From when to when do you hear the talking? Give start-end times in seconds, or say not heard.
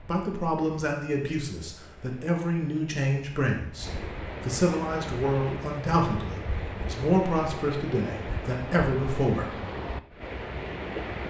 0.1-9.5.